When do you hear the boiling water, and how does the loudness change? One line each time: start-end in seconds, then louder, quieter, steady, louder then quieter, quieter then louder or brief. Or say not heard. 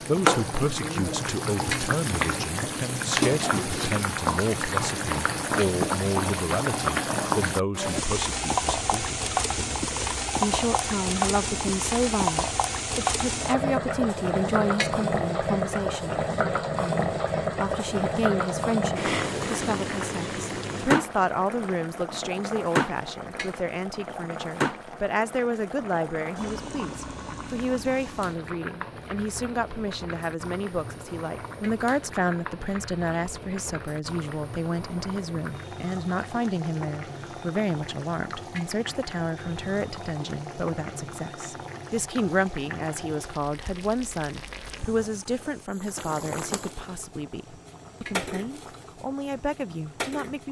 0.0-50.4 quieter.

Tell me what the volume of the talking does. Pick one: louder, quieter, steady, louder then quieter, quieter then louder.
steady.